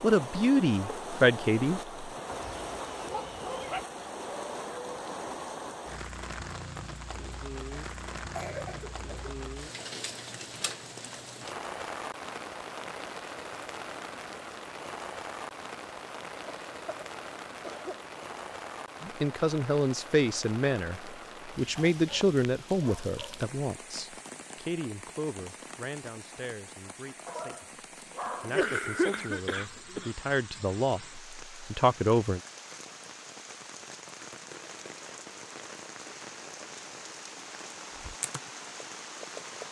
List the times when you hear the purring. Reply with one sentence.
The purring can't be heard in this clip.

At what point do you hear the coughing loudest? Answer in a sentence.
The volume of the coughing peaks at 29 seconds.